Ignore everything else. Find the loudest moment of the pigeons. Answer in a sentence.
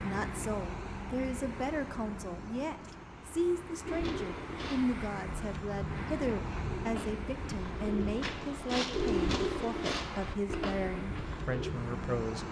The loudest moment of the pigeons is at 9 seconds.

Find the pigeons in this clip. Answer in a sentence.
The pigeons can be heard from 3.9 to 11.8 s.